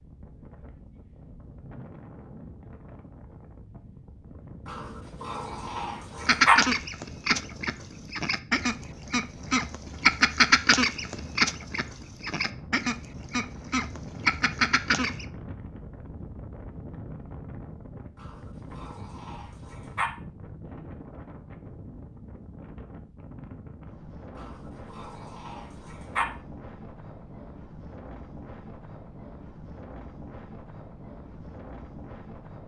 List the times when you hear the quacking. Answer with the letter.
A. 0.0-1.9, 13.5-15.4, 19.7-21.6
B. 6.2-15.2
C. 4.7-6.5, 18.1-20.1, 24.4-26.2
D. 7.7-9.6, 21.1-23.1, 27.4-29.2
B.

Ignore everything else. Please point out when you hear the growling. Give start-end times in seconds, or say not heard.
4.7-6.5, 18.1-20.1, 24.4-26.2.